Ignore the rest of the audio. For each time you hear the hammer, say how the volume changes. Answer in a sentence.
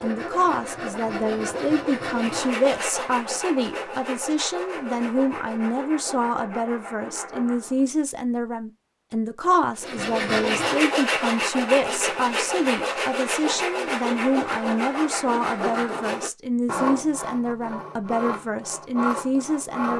The hammer can't be heard in this clip.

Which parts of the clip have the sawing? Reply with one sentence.
You can hear the sawing from 0.0 to 7.9 s and from 9.8 to 19.9 s.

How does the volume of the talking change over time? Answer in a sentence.
The loudness of the talking stays about the same.